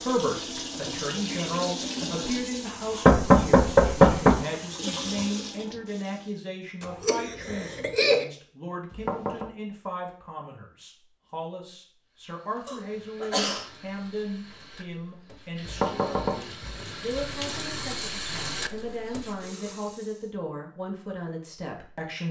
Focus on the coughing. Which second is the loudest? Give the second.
8 s.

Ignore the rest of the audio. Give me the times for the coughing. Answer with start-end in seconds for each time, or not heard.
6.8-8.2, 12.7-13.7.